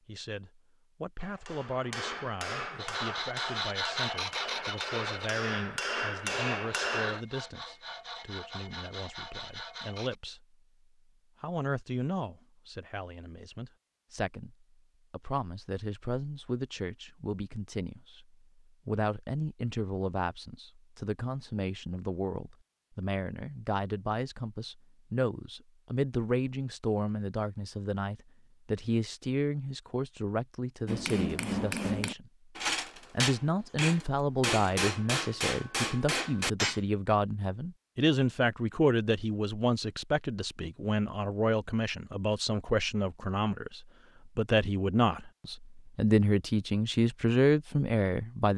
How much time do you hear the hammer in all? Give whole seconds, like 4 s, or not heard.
12 s.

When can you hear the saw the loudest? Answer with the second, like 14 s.
4 s.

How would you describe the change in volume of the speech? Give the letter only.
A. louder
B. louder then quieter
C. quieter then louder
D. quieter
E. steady
A.